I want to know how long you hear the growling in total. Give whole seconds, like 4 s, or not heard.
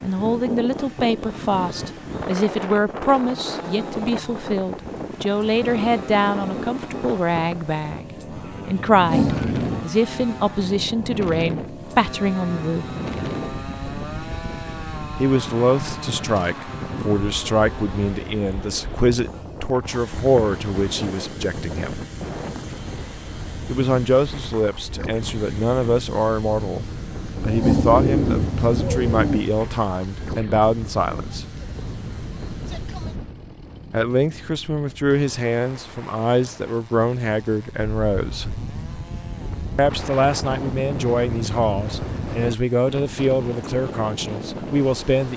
3 s.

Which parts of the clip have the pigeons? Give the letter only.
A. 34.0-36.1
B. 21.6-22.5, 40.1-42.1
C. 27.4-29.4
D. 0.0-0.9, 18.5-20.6
C.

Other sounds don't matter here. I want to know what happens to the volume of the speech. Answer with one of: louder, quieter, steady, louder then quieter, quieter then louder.
steady.